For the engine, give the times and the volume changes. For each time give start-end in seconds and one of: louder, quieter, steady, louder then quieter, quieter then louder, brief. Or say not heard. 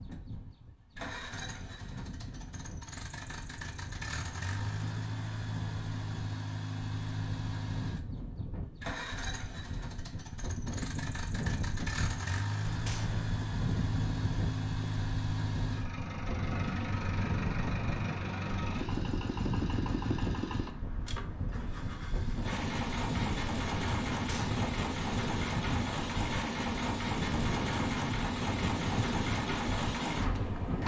0.0-30.8 louder.